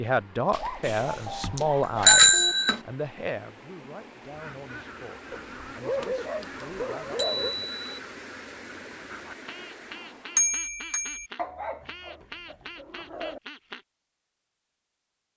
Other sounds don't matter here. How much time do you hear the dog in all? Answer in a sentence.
The dog can be heard for 6 seconds in total.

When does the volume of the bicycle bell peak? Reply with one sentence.
The volume of the bicycle bell peaks at 2 seconds.